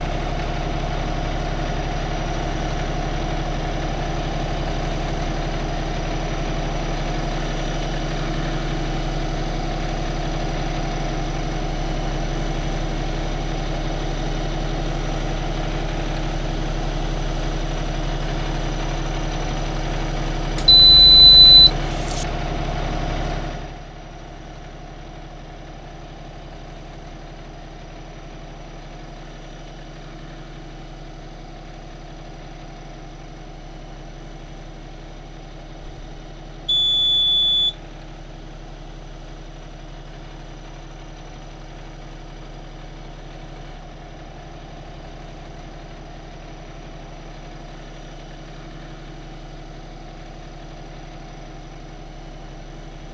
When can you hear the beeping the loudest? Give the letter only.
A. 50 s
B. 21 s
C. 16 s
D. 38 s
B.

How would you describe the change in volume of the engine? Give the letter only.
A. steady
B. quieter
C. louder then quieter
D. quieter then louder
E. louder
B.